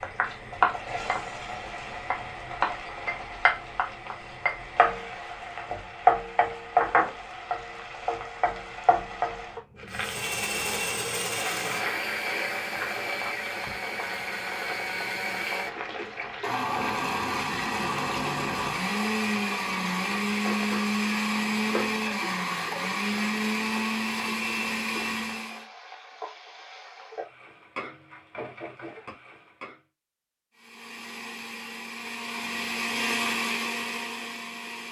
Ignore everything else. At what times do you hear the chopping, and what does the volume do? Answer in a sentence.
You can't hear the chopping here.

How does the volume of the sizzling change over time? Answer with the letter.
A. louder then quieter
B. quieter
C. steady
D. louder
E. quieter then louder
B.